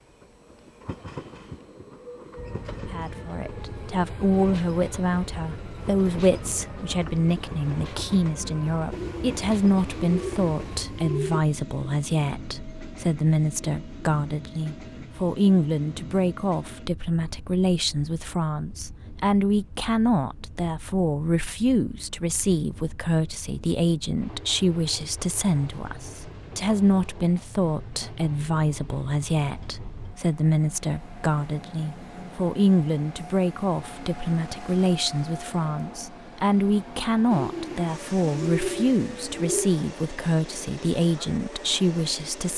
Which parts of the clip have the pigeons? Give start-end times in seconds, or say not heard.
8.9-11.4, 37.3-39.7.